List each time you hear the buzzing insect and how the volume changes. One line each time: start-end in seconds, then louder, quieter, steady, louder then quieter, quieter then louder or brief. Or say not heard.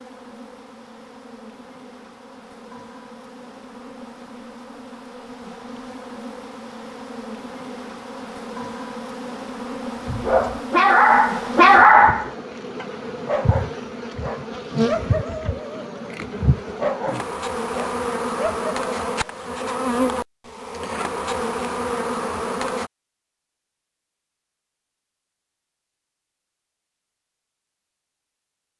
0.0-22.9 louder.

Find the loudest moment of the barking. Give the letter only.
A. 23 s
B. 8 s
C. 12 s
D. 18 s
C.